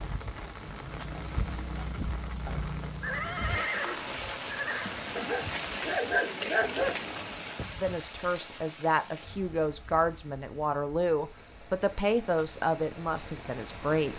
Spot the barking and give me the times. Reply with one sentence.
The barking can be heard from 5.2 to 7.1 s.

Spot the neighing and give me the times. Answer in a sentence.
You can hear the neighing from 3.0 to 5.0 s.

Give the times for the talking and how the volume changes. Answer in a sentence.
The talking can be heard from 7.8 to 14.1 s, at a steady volume.